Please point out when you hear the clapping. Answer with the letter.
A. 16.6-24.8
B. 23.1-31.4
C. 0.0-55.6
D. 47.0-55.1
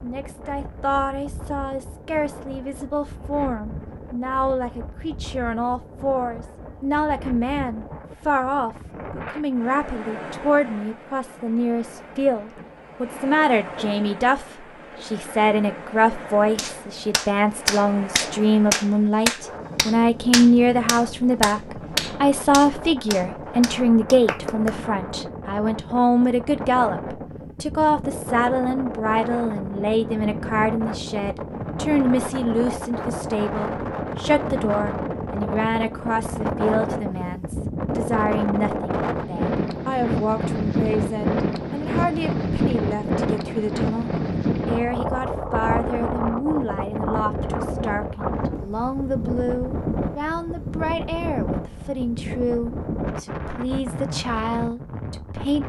A.